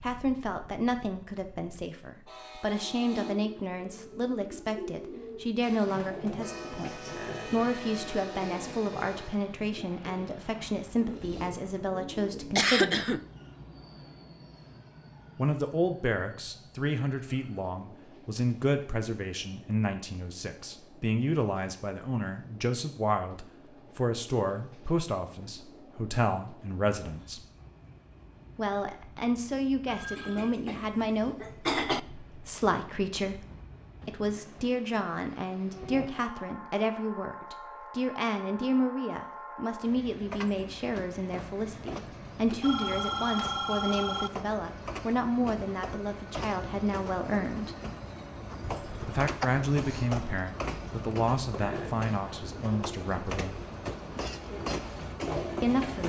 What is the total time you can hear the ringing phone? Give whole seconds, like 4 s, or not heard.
3 s.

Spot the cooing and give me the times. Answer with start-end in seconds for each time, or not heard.
2.8-12.6, 51.5-56.0.